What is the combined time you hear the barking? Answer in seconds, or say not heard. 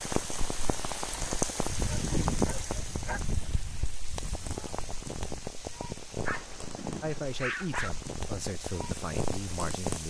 3 s.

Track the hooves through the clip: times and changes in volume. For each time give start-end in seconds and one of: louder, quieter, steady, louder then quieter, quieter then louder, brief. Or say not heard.
not heard.